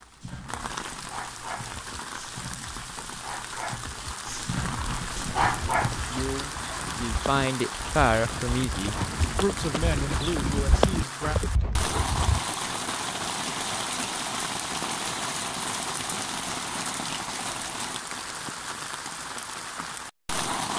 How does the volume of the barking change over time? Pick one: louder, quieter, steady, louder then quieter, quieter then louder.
louder.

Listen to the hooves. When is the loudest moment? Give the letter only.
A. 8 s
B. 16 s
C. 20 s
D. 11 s
D.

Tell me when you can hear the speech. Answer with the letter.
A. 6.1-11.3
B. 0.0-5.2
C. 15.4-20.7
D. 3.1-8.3
A.